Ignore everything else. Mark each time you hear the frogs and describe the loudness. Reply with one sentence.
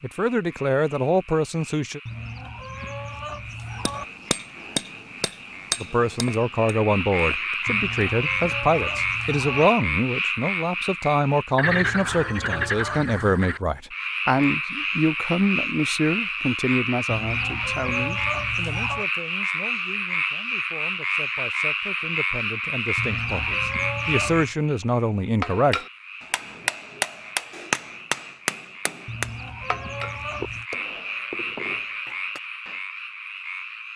You can hear the frogs from 0.0 to 33.9 s, getting louder then quieter.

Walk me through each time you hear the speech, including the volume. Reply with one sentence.
You can hear the speech briefly from 0.0 to 2.0 s; and from 5.8 to 25.8 s, getting quieter then louder.